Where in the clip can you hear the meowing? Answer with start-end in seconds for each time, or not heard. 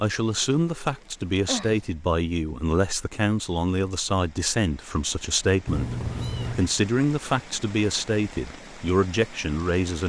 0.6-1.9, 5.7-6.7.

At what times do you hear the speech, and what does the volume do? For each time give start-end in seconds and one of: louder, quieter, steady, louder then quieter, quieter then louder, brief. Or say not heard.
0.0-10.0 steady.